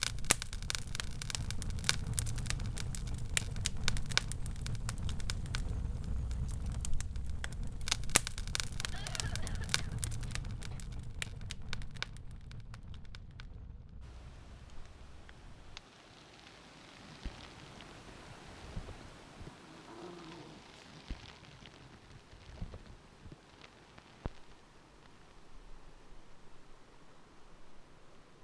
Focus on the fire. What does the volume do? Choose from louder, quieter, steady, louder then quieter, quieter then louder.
quieter.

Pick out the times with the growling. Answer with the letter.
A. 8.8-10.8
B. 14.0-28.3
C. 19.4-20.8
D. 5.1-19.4
C.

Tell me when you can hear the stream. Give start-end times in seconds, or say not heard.
14.0-28.3.